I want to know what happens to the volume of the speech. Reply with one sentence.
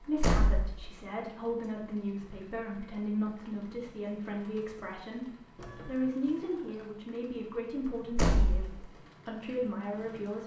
The loudness of the speech stays about the same.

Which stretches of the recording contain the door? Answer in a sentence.
The door can be heard from 0.1 to 0.9 s and from 8.1 to 8.8 s.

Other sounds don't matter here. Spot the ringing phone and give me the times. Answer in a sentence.
The ringing phone can't be heard in this clip.